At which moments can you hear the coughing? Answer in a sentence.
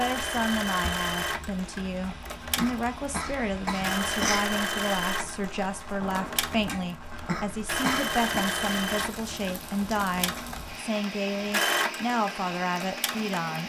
You can hear the coughing from 2.4 to 4.4 s and from 7.1 to 8.2 s.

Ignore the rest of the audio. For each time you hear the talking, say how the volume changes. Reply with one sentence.
You can hear the talking from 0.0 to 13.6 s, at a steady volume.